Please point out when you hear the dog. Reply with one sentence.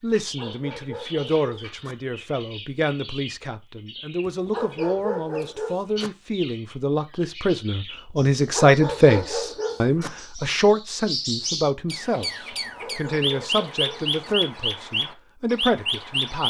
You can hear the dog from 0.1 to 1.9 s, from 4.2 to 6.1 s, from 8.4 to 10.1 s and from 12.7 to 14.3 s.